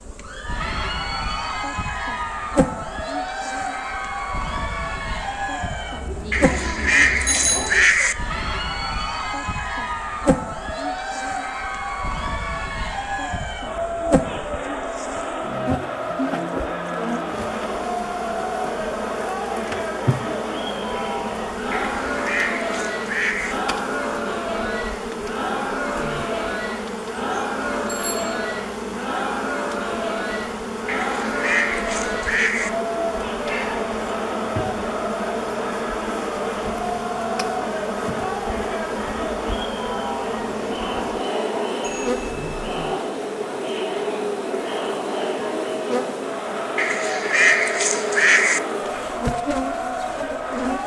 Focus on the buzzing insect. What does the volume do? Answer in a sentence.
The loudness of the buzzing insect stays about the same.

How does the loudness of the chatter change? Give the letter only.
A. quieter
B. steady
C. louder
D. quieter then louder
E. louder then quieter
B.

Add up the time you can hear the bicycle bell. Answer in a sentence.
The bicycle bell can be heard for 2 seconds in total.